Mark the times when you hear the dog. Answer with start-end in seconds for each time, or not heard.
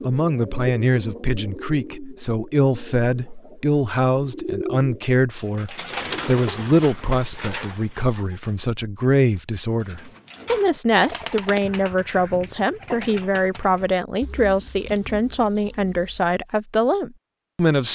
not heard.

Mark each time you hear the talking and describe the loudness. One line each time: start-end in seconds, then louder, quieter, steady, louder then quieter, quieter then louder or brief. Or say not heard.
0.0-17.9 steady.